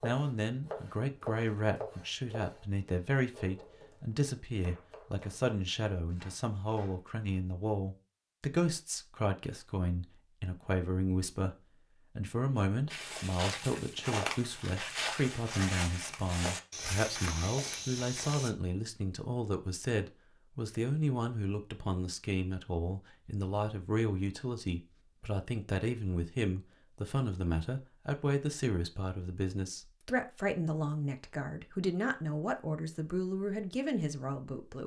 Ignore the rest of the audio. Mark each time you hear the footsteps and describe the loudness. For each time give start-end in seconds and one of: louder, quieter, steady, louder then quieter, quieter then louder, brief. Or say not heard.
12.9-18.5 steady.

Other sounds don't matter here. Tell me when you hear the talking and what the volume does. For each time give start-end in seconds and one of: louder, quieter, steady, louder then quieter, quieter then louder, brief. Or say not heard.
0.0-11.6 steady
12.2-34.8 steady.